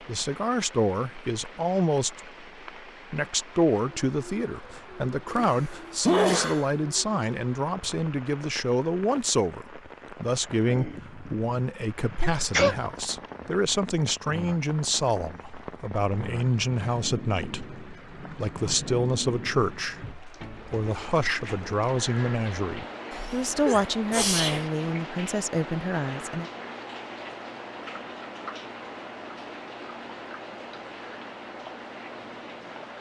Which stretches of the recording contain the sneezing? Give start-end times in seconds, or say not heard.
5.3-6.7, 12.2-13.1, 23.1-24.7.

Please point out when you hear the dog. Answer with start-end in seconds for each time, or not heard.
not heard.